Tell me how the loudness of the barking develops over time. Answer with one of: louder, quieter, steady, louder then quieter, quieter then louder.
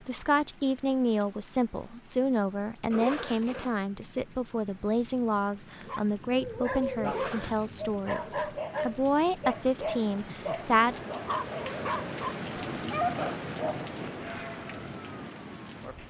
steady.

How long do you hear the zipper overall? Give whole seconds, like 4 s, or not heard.
4 s.